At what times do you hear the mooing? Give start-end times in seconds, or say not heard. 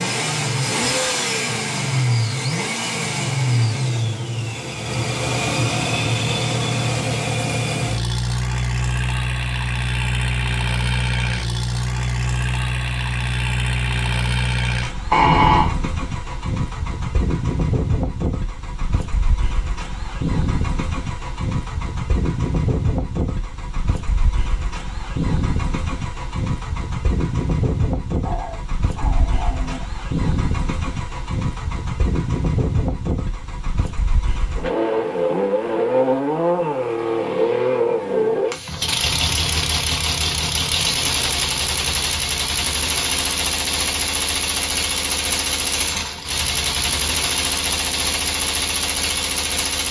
not heard.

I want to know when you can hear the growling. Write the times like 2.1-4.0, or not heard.
15.1-15.8, 28.2-29.9.